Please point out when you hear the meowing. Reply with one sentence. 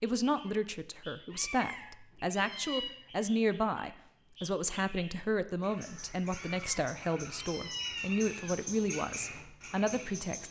You can hear the meowing from 1.3 to 3.0 s and from 6.3 to 8.6 s.